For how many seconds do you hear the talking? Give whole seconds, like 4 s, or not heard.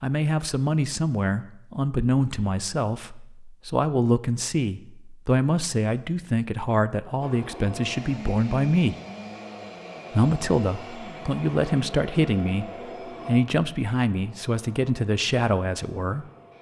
15 s.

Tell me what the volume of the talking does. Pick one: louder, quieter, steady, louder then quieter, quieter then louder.
steady.